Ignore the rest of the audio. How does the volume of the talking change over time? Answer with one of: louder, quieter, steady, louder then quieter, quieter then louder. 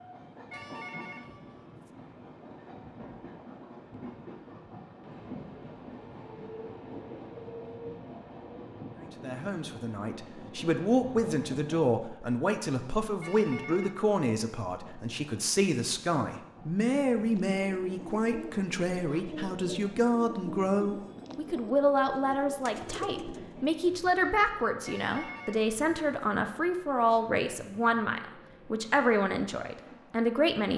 steady.